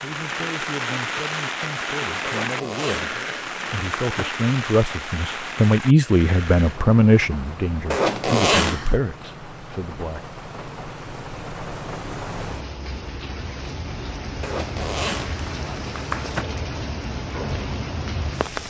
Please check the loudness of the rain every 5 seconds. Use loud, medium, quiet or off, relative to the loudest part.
loud, medium, medium, loud.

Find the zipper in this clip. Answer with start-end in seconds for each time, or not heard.
2.2-4.2, 7.9-8.9, 14.4-16.4.